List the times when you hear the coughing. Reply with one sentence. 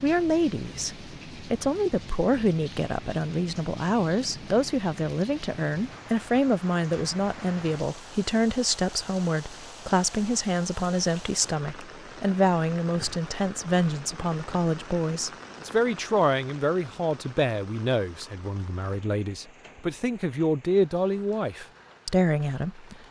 You can't hear the coughing here.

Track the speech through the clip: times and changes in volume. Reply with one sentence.
You can hear the speech from 0.0 to 22.9 s, at a steady volume.